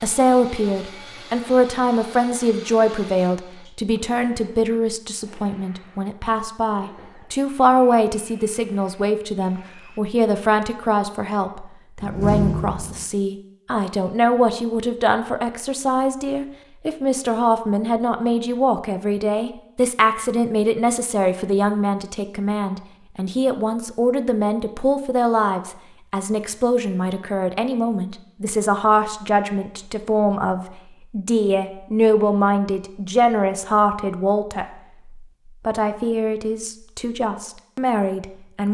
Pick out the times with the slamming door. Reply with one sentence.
You can hear the slamming door from 12.0 to 13.1 s.